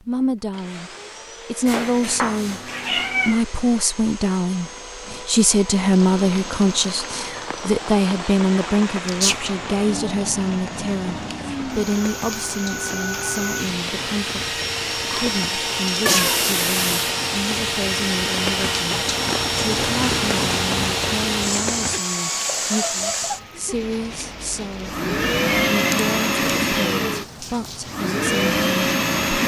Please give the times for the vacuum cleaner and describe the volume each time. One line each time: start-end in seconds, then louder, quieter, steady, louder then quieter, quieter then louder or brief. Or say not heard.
0.1-29.4 louder.